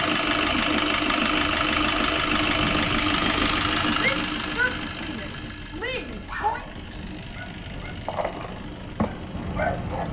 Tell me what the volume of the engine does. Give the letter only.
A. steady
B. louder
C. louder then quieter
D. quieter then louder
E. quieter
E.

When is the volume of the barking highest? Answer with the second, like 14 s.
10 s.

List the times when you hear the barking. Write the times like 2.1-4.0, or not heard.
6.0-10.0.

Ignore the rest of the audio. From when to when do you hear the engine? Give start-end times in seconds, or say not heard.
0.0-10.0.